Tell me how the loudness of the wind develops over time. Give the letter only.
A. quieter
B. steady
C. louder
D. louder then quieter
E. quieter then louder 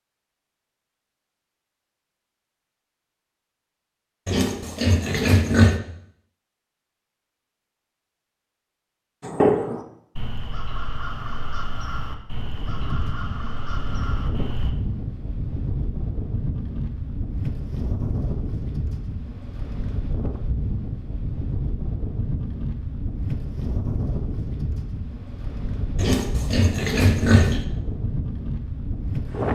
B.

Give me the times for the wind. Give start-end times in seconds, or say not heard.
12.3-29.5.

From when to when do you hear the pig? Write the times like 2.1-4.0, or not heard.
4.2-5.8, 25.9-27.6.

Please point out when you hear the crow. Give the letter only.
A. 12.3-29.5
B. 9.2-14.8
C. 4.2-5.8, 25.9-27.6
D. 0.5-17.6
B.